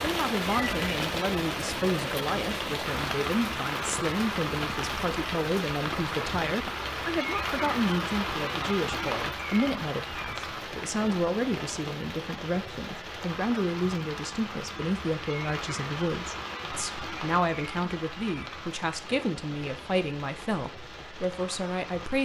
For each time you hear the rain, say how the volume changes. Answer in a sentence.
You can hear the rain from 0.0 to 22.2 s, getting quieter.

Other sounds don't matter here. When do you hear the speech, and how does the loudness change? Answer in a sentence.
You can hear the speech from 0.0 to 22.2 s, at a steady volume.